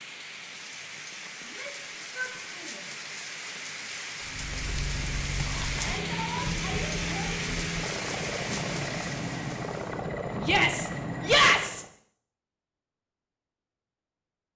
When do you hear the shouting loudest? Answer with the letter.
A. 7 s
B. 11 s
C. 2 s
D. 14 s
B.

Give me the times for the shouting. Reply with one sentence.
The shouting can be heard from 1.4 to 2.9 s, from 5.7 to 7.5 s and from 10.4 to 11.8 s.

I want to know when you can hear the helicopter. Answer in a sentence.
You can hear the helicopter from 4.2 to 11.9 s.